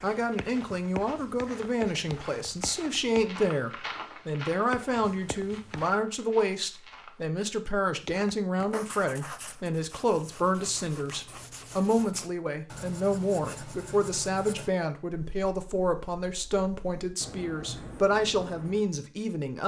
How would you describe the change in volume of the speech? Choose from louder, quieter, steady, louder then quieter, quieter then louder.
steady.